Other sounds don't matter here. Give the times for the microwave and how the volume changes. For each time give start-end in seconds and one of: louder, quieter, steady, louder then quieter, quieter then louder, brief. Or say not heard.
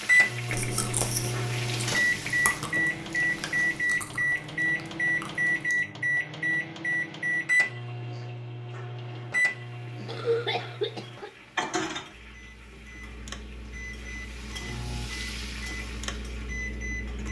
0.0-17.2 quieter.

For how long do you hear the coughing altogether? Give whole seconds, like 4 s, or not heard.
2 s.